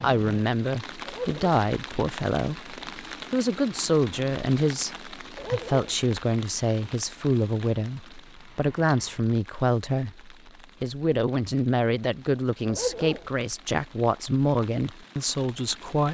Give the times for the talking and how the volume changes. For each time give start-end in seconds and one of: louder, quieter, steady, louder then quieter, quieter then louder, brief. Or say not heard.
0.0-16.0 steady.